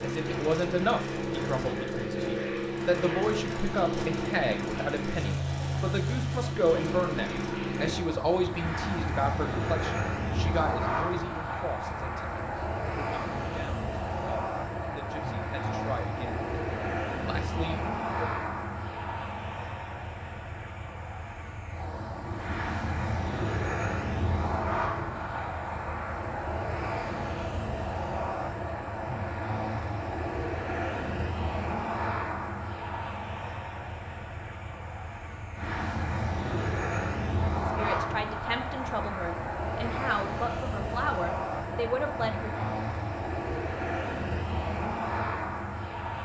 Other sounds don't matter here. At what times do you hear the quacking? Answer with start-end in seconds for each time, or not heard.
not heard.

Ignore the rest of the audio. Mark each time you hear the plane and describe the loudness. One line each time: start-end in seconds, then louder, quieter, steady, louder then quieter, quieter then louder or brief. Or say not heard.
0.0-46.1 steady.